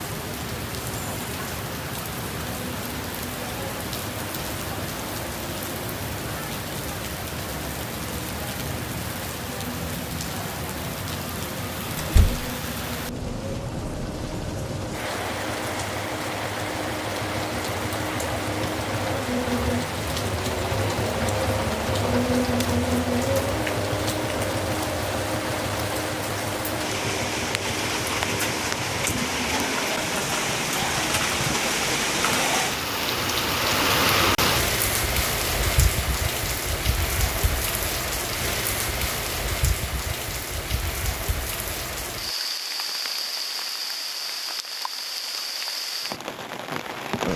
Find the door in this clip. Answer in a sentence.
The door can be heard from 11.9 to 12.4 s.